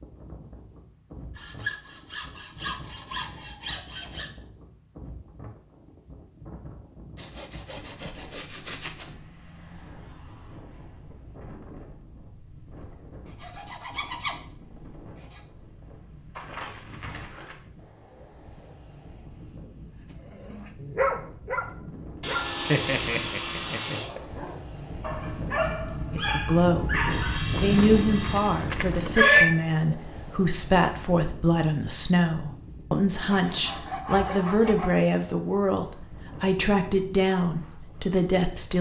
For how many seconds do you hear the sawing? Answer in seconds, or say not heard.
12 s.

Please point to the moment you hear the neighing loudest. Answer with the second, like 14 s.
29 s.